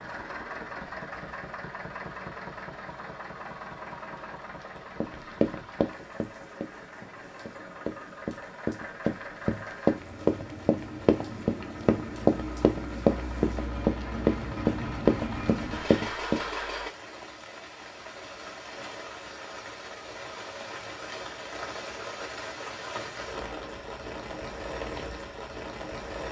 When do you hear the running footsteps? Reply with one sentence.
The running footsteps can be heard from 5.0 to 16.4 s.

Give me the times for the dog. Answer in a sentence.
You can't hear the dog here.